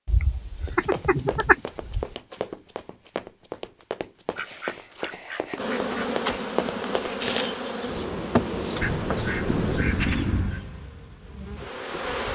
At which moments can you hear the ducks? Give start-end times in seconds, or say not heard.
0.1-2.0, 4.3-6.1, 8.8-10.6.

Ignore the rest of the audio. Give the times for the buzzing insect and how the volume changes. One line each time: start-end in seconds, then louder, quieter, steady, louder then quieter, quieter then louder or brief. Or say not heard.
5.5-12.3 quieter.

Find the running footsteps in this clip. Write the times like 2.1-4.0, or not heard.
0.7-7.2.